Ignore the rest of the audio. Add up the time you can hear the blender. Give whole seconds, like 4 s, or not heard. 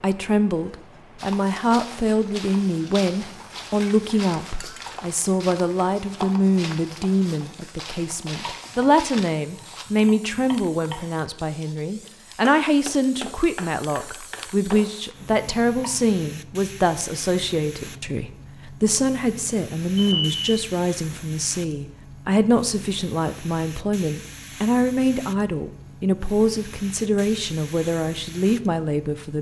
not heard.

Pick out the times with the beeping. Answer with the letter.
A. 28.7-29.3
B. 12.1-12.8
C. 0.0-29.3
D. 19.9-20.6
D.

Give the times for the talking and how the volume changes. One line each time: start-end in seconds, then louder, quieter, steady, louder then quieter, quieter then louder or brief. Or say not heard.
0.0-29.3 steady.